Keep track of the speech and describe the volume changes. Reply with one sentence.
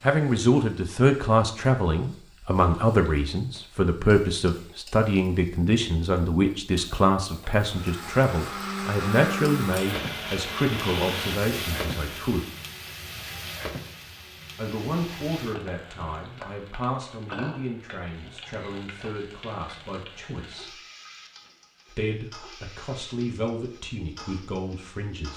The volume of the speech goes down.